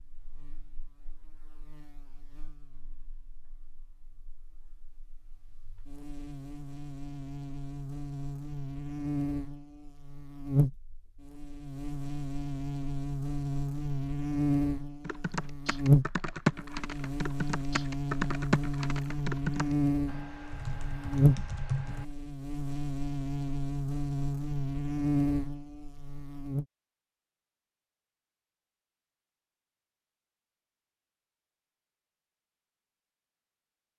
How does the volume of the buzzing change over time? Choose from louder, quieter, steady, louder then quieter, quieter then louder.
louder.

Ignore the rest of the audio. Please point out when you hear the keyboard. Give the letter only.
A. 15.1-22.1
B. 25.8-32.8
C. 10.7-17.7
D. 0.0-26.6
A.